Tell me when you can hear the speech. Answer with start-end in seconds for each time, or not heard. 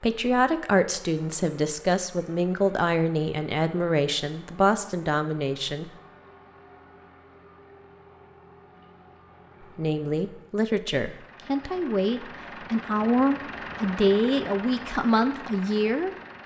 0.0-5.9, 9.8-16.1.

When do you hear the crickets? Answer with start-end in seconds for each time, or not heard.
not heard.